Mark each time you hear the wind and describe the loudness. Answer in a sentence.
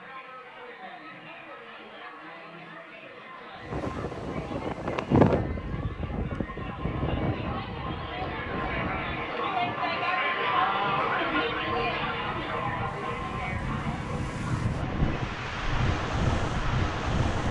The wind can be heard from 3.6 to 17.4 s, getting quieter then louder.